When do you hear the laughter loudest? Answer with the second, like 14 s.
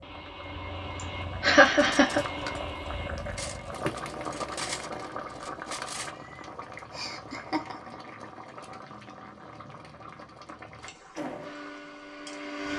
2 s.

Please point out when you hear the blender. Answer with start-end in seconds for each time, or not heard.
0.0-5.5, 11.2-12.7.